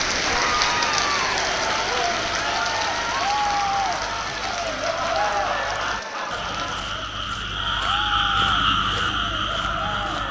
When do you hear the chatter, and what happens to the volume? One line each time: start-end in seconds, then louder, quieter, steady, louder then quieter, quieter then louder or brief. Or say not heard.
0.1-10.2 quieter.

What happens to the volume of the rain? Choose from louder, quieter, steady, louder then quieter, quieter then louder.
quieter.